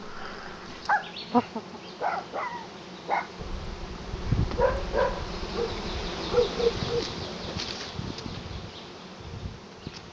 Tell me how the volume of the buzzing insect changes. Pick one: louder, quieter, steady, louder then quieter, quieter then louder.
louder then quieter.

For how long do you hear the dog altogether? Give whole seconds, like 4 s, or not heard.
8 s.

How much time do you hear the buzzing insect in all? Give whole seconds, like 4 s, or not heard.
10 s.